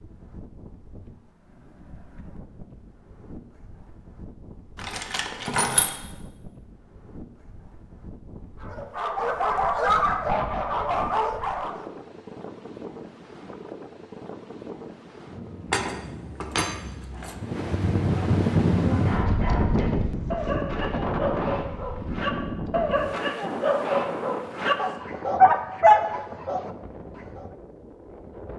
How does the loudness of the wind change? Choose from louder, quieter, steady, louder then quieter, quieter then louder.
louder then quieter.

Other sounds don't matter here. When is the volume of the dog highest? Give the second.
26 s.